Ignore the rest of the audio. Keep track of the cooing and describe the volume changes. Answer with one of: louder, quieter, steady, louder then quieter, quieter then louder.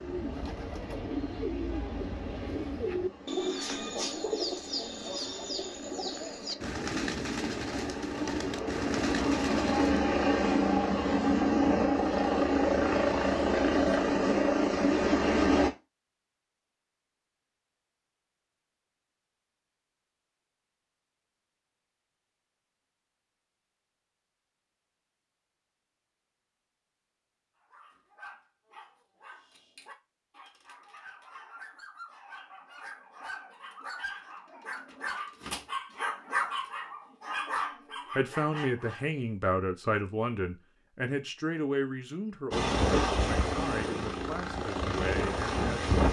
steady.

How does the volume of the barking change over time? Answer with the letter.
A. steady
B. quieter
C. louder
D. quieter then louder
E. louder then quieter
C.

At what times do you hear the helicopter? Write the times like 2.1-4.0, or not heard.
0.0-15.7, 42.5-46.0.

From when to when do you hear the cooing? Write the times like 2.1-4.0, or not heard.
0.0-10.1.